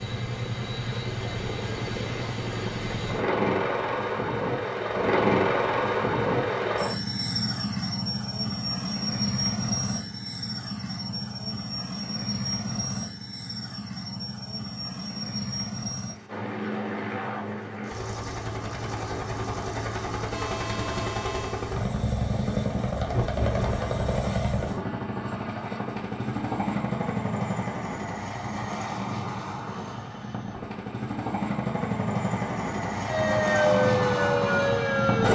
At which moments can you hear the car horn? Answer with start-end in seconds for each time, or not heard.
20.3-21.7.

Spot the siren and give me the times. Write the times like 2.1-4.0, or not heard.
33.0-35.2.